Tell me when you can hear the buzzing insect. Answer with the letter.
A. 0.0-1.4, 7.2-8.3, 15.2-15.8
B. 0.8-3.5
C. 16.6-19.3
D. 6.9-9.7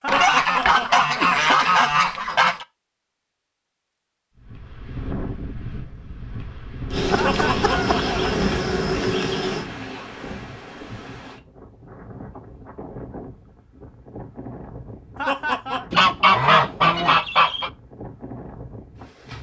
D.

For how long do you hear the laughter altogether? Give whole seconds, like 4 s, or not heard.
3 s.